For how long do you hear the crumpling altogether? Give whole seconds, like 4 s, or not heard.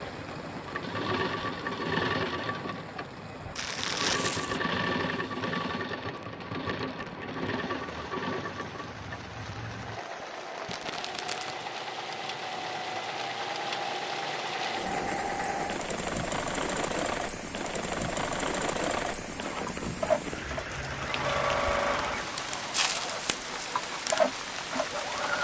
3 s.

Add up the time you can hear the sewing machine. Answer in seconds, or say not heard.
25 s.